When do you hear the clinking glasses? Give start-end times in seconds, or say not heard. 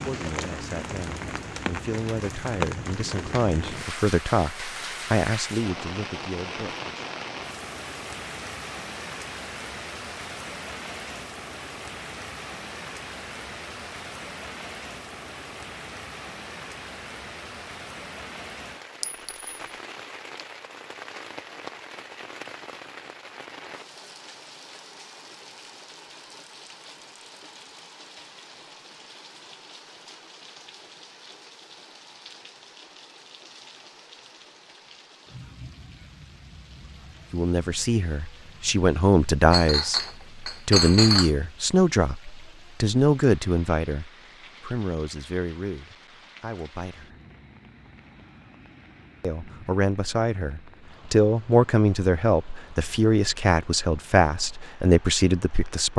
19.0-19.5, 39.5-41.3.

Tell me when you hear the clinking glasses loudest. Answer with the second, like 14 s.
41 s.